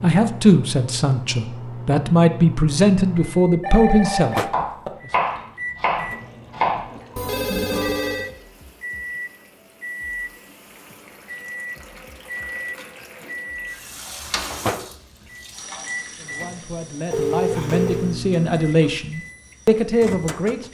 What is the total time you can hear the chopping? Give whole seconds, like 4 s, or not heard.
3 s.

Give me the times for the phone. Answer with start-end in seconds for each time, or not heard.
3.6-4.9, 7.2-8.3, 17.1-18.1.